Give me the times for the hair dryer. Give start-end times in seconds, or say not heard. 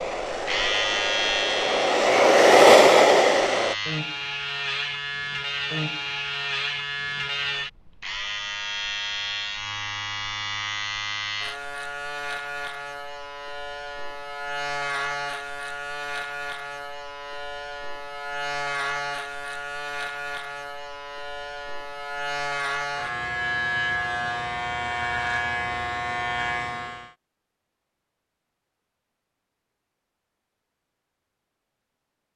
0.0-3.8.